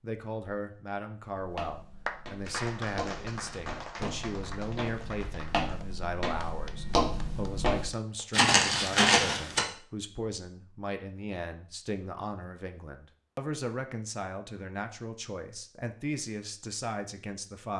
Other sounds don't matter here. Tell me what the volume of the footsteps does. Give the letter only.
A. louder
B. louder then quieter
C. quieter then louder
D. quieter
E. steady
A.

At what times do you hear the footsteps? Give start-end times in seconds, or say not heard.
1.4-9.7.